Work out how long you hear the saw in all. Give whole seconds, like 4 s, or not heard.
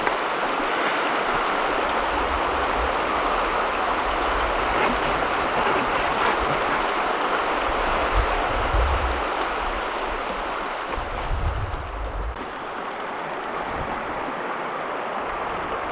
2 s.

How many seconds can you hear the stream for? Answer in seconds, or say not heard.
16 s.